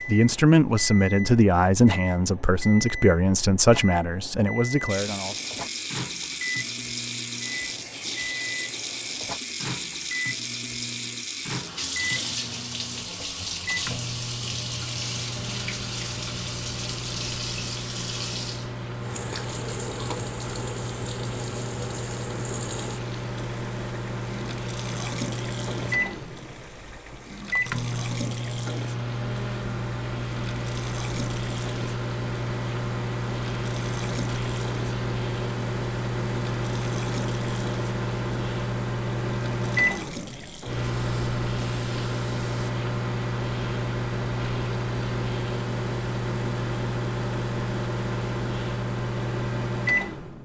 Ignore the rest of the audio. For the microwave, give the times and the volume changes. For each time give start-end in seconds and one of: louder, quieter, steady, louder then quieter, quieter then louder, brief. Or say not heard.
0.0-50.4 louder.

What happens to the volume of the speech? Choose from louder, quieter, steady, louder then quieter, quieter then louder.
quieter.